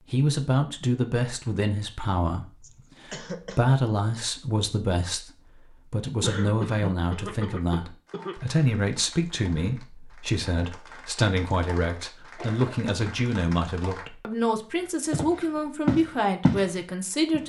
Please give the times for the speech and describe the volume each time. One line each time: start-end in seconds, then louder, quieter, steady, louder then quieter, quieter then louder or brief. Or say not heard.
0.1-17.4 steady.